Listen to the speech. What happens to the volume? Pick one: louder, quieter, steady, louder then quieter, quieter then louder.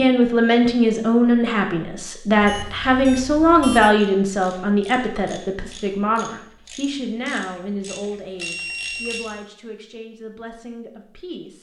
quieter.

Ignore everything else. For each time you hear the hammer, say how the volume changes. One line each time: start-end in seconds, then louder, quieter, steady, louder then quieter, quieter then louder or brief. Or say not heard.
not heard.